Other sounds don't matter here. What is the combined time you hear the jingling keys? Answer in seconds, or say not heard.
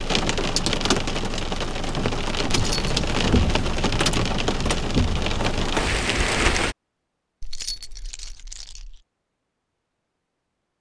2 s.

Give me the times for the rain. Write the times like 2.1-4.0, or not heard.
0.0-6.8.